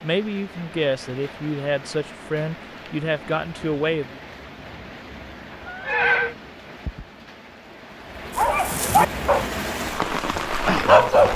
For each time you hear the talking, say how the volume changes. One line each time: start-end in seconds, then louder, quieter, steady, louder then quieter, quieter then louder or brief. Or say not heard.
0.0-4.2 steady.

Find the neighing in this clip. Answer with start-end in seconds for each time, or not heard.
5.7-6.3.